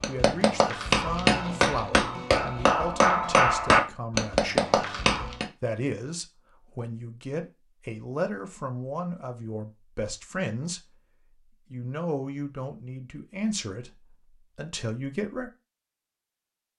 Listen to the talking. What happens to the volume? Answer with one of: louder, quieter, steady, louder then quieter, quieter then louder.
steady.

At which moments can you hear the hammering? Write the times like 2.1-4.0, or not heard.
0.0-5.5.